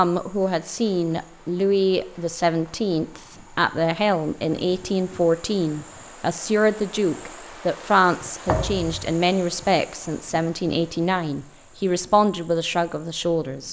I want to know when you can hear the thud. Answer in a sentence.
The thud can be heard from 8.4 to 9.1 s.